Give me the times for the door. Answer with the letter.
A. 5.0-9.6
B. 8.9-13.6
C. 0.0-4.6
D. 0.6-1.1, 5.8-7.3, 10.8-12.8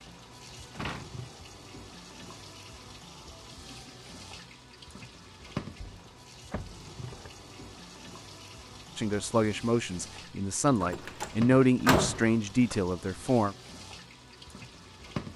D.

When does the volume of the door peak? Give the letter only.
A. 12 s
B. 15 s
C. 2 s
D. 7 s
A.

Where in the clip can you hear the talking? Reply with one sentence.
You can hear the talking from 8.9 to 13.6 s.